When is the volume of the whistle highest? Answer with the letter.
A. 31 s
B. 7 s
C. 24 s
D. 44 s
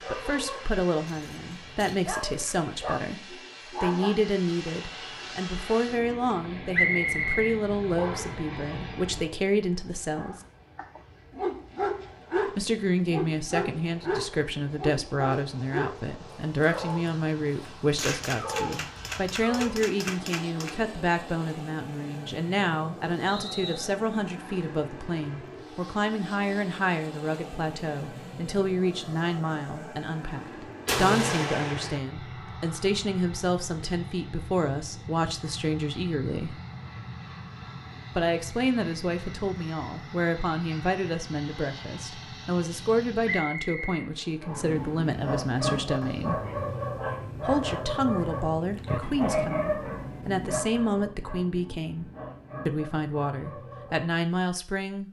B.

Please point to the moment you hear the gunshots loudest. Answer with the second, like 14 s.
31 s.